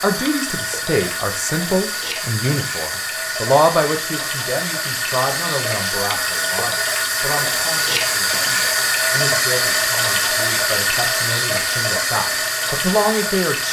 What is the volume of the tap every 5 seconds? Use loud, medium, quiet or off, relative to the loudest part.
medium, loud, loud.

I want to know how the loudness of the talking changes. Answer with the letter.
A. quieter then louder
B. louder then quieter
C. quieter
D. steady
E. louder
A.